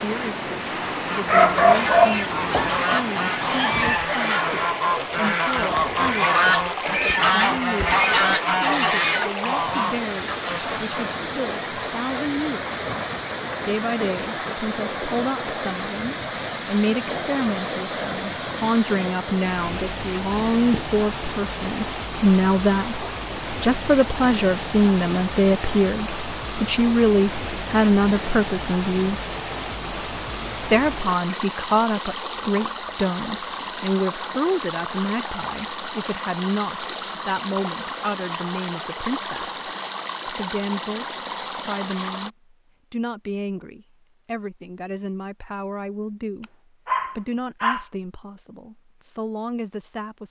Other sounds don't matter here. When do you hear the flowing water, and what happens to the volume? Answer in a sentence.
The flowing water can be heard from 0.0 to 42.3 s, at a steady volume.